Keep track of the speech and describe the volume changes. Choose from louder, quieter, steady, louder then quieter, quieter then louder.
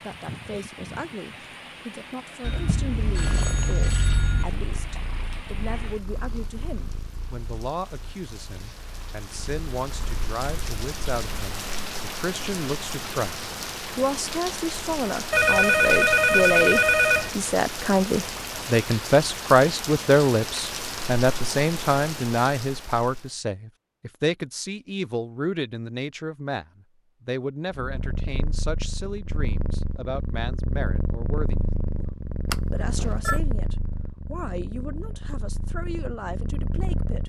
louder then quieter.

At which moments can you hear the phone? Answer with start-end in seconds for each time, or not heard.
2.4-4.5, 15.3-17.3, 32.5-33.4.